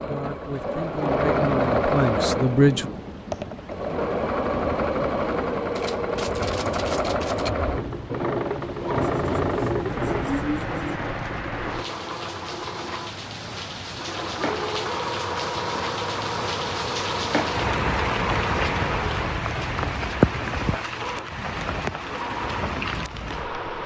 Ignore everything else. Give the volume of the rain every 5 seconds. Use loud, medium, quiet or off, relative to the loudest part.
medium, medium, medium, loud, loud.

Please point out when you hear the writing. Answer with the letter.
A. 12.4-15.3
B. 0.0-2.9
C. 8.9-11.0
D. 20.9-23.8
C.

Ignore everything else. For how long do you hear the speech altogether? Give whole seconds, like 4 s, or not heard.
3 s.